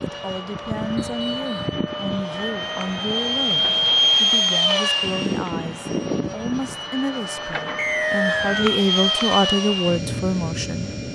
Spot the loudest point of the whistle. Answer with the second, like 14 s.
8 s.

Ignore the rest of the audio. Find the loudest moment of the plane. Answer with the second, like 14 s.
4 s.